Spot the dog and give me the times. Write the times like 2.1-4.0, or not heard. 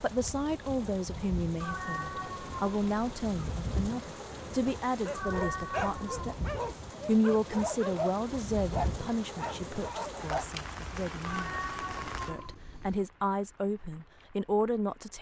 5.0-10.4.